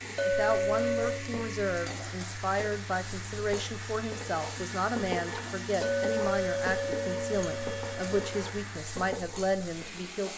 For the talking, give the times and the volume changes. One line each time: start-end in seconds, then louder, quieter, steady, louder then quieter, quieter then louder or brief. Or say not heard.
0.2-10.3 steady.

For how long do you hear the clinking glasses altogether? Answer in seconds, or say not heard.
4 s.